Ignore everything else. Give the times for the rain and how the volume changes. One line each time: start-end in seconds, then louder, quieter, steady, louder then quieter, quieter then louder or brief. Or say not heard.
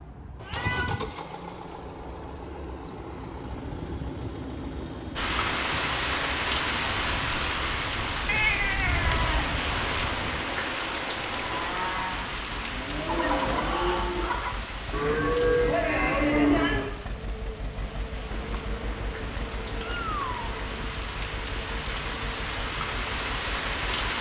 5.2-24.1 quieter then louder.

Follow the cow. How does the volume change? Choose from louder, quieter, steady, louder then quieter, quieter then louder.
louder.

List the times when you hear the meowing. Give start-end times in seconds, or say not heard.
0.3-1.1, 8.2-9.3, 18.2-20.8.